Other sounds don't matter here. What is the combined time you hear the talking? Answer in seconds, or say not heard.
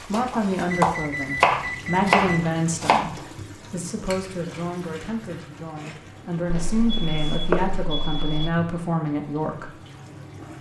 10 s.